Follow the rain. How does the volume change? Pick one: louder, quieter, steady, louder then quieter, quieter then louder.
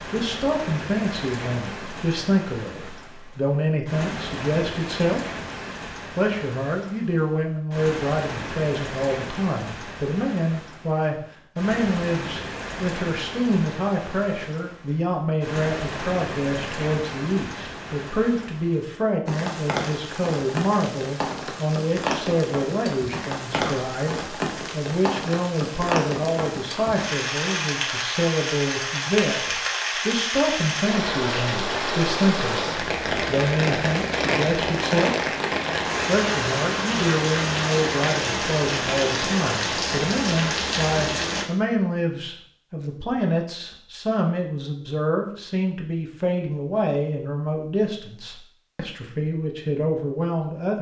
louder.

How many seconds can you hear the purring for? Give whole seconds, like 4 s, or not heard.
not heard.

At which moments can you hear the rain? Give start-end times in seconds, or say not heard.
0.0-41.5.